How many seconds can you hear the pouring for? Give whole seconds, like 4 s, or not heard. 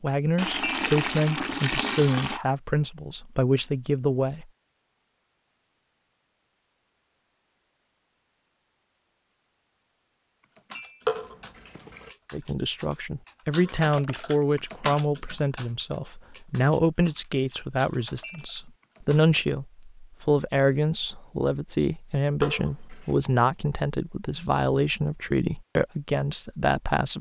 4 s.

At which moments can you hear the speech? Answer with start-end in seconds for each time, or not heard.
0.0-4.5, 12.3-27.1.